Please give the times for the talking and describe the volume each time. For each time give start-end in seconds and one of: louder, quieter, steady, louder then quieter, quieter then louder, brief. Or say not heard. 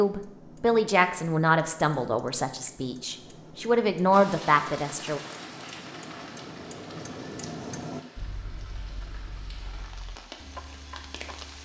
0.0-5.2 quieter then louder.